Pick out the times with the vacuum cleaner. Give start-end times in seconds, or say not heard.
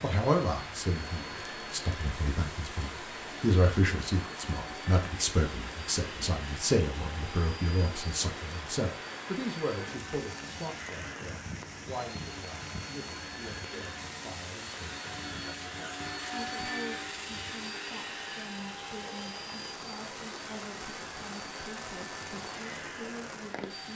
0.0-23.9.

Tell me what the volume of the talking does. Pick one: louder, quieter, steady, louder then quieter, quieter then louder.
quieter.